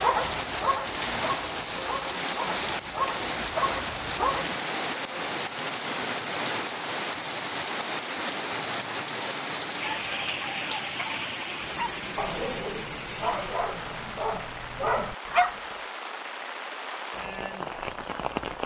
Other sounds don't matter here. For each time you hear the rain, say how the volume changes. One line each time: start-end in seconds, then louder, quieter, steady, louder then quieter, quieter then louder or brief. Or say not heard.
0.0-18.6 quieter.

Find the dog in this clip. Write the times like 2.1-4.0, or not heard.
0.0-4.5, 11.8-15.7.